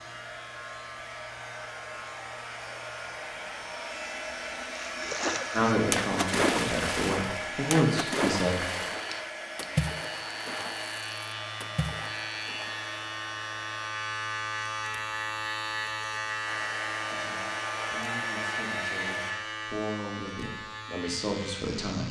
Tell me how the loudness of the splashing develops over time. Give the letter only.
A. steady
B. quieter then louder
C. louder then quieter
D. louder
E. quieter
E.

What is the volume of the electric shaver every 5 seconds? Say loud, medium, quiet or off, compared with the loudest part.
medium, medium, loud, loud, medium.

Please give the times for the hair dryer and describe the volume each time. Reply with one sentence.
You can hear the hair dryer from 0.0 to 13.9 s, getting louder then quieter; and briefly from 16.4 to 19.4 s.